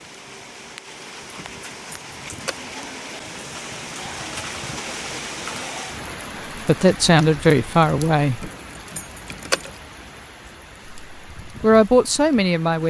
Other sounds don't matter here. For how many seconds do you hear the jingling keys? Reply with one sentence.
The jingling keys can be heard for 3 seconds in total.